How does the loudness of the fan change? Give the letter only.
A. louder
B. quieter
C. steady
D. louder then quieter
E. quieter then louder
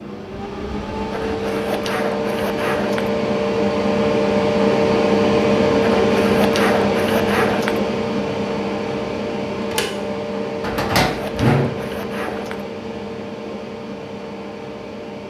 D.